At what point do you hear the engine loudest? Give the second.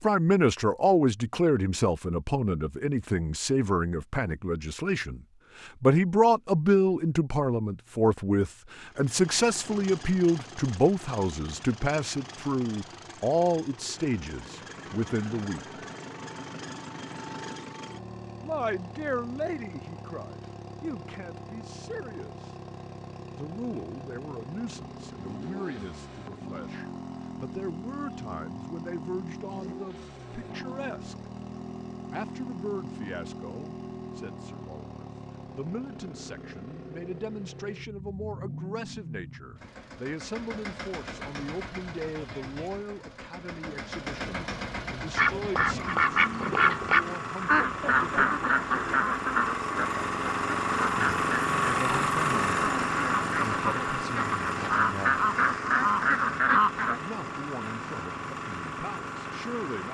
52 s.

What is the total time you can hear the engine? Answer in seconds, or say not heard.
51 s.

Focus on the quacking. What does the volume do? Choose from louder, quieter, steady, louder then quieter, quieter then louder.
quieter then louder.